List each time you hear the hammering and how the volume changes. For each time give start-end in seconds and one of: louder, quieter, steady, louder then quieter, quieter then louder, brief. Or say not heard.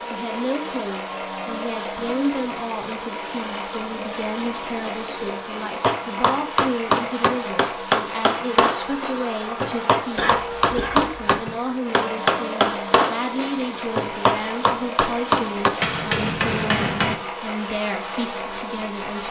5.8-17.2 steady.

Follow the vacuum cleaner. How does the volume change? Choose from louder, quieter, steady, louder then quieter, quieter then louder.
steady.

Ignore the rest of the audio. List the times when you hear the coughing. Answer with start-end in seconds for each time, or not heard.
10.2-11.6.